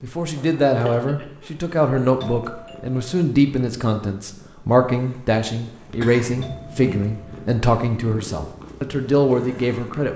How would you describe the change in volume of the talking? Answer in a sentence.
The volume of the talking stays about the same.